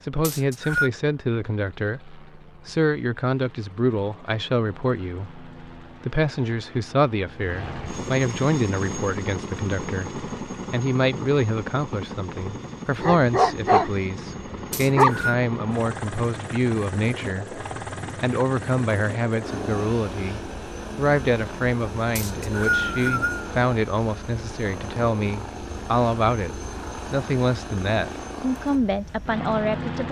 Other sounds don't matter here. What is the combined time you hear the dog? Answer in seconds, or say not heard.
2 s.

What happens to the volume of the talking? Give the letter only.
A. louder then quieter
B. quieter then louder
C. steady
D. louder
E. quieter
C.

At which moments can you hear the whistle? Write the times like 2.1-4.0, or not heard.
0.2-0.9, 14.7-15.3, 22.1-23.5.